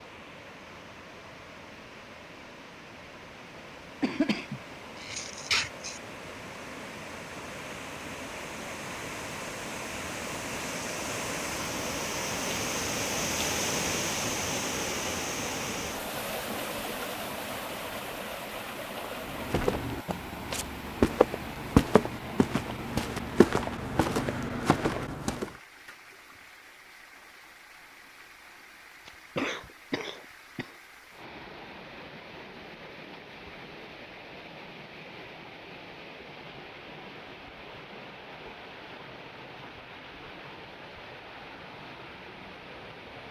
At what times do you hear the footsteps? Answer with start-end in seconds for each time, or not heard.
19.0-25.5.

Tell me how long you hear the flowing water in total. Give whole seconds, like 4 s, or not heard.
43 s.